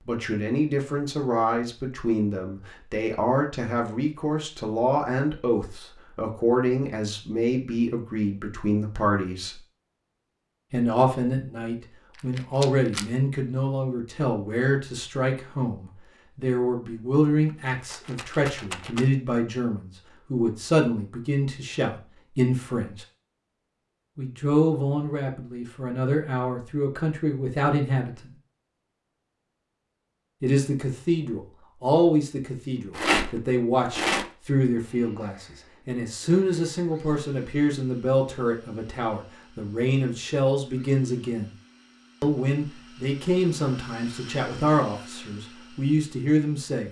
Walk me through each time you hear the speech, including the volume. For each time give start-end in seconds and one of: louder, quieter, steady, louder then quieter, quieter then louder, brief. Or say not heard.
0.1-9.6 steady
10.7-23.1 steady
24.1-28.3 quieter then louder
30.4-41.5 steady
42.2-46.8 quieter then louder.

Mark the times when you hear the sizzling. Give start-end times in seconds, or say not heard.
not heard.